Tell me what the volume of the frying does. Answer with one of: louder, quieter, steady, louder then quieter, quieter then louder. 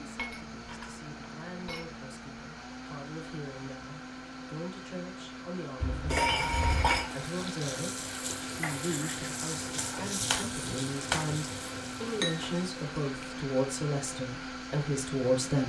louder then quieter.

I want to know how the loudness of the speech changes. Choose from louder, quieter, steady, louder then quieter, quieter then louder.
louder.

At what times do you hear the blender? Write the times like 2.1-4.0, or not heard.
0.0-15.6.